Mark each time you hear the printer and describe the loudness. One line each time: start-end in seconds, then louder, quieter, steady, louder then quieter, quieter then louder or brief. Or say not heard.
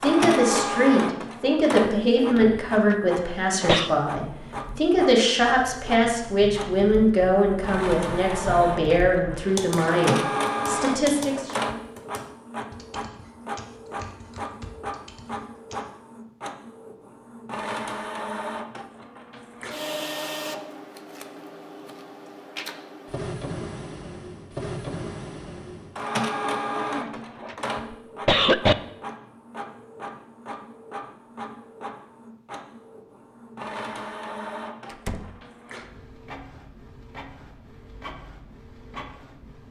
0.0-39.6 quieter.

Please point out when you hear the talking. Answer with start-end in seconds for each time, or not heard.
0.0-11.6.